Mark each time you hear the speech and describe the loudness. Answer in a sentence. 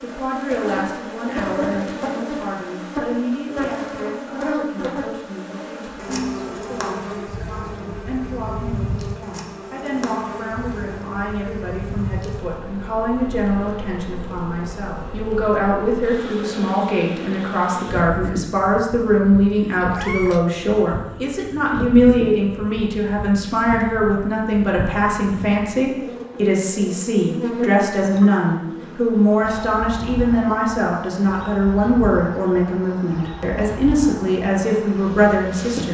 The speech can be heard from 0.0 to 35.9 s, getting louder.